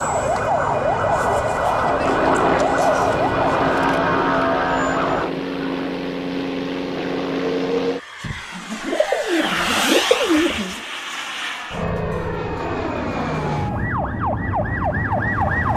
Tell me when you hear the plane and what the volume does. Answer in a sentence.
The plane can be heard from 1.9 to 15.7 s, at a steady volume.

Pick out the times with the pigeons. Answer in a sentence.
You can hear the pigeons from 8.2 to 10.8 s.